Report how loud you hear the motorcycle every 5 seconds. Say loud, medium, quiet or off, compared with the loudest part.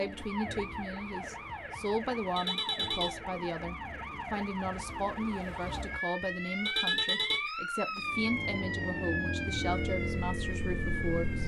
off, loud, loud.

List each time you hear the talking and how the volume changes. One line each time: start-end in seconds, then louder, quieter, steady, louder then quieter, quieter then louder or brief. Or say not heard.
0.0-11.4 steady.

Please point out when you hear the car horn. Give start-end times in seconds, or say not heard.
2.1-3.1, 6.2-7.5.